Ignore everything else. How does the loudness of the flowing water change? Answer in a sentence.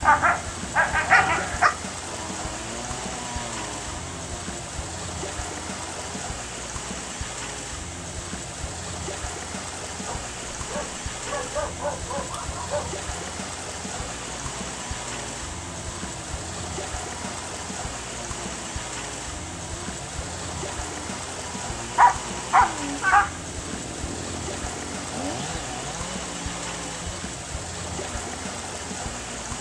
The loudness of the flowing water stays about the same.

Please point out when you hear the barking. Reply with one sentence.
You can hear the barking from 0.0 to 1.7 s, from 10.1 to 12.9 s and from 21.9 to 23.3 s.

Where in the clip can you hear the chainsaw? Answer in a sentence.
You can hear the chainsaw from 2.0 to 6.2 s and from 13.0 to 29.5 s.